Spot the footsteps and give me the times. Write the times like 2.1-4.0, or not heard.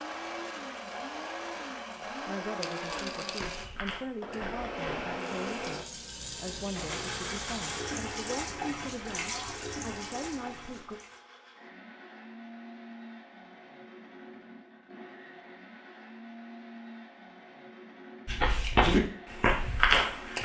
2.8-5.0, 18.2-20.4.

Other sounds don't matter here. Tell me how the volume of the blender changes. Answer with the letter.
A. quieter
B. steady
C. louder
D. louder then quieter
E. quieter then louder
A.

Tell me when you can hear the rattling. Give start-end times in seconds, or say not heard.
2.6-3.7.